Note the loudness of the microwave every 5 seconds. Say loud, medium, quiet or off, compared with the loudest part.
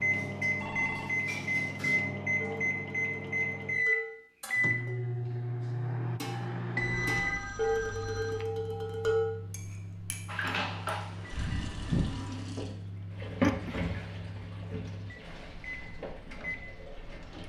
loud, medium, quiet, quiet.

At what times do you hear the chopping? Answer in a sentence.
You can't hear the chopping here.